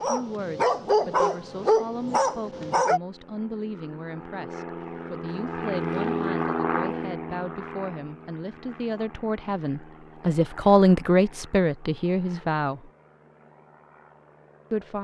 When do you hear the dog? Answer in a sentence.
The dog can be heard from 0.0 to 3.0 s.